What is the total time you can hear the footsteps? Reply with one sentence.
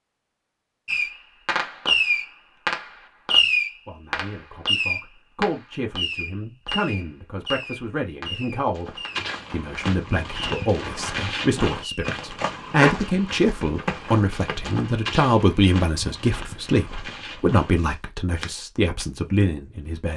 You can hear the footsteps for 10 seconds altogether.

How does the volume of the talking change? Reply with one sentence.
The loudness of the talking goes up.